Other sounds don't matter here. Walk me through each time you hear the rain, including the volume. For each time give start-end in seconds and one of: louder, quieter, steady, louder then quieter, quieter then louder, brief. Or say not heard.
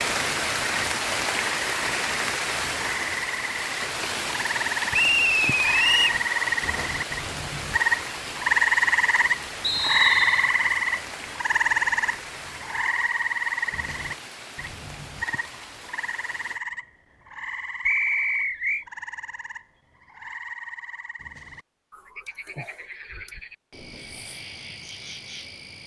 0.0-16.6 quieter.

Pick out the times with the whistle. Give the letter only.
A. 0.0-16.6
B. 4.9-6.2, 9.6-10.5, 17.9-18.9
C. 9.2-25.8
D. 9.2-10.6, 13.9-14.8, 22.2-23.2
B.